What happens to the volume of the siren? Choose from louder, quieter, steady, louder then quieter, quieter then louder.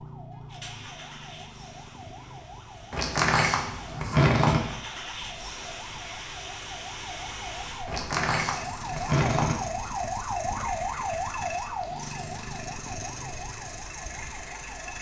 louder then quieter.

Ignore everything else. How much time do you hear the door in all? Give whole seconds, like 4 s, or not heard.
4 s.